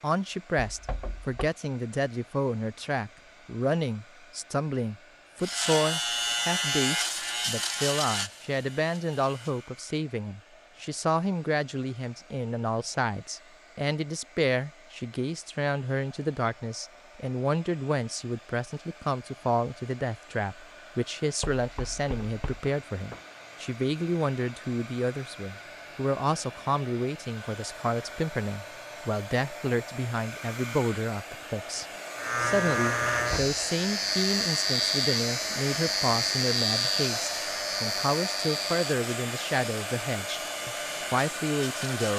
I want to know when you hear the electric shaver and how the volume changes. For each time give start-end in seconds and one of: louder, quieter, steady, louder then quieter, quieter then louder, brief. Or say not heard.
5.4-9.7 quieter
32.1-42.1 quieter.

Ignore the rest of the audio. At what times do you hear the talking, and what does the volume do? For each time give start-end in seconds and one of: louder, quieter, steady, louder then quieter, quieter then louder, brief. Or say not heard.
0.0-42.1 steady.